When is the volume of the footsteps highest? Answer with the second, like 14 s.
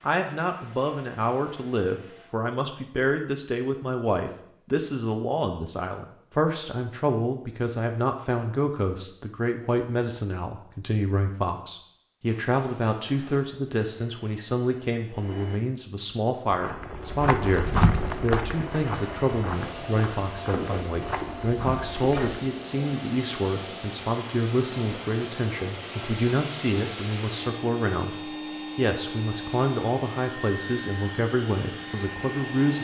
18 s.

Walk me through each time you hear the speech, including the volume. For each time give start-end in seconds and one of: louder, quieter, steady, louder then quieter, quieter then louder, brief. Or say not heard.
0.0-32.7 steady.